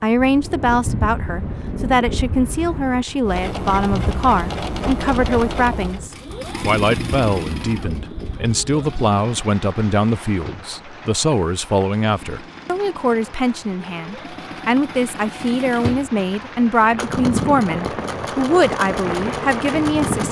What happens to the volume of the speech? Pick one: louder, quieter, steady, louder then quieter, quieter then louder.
steady.